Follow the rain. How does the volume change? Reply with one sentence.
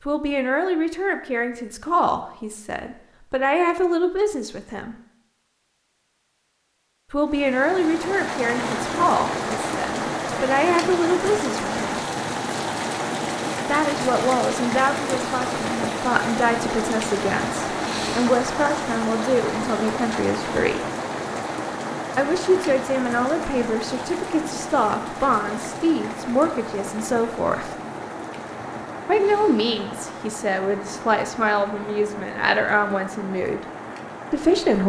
The volume of the rain goes down.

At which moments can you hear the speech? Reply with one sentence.
You can hear the speech from 0.1 to 5.0 s, from 7.1 to 12.1 s, from 13.7 to 20.8 s, from 22.1 to 27.7 s, from 29.1 to 33.6 s and from 34.3 to 34.8 s.